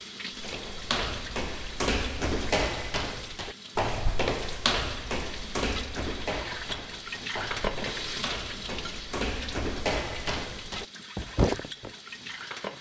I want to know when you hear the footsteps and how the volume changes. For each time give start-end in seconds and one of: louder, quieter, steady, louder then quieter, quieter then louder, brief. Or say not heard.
0.3-11.9 quieter then louder.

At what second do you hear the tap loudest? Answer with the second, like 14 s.
8 s.